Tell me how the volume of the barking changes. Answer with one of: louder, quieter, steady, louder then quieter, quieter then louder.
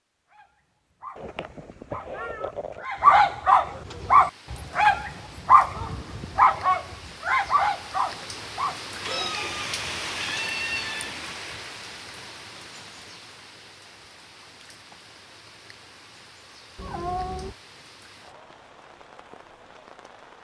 louder then quieter.